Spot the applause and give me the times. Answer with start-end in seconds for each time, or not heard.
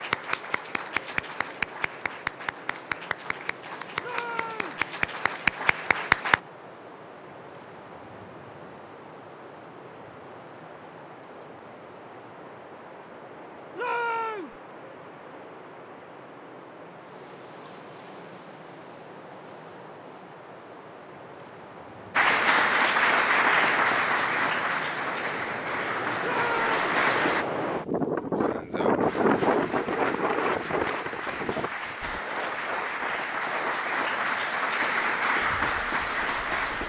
0.0-6.4, 22.1-27.4, 29.0-36.8.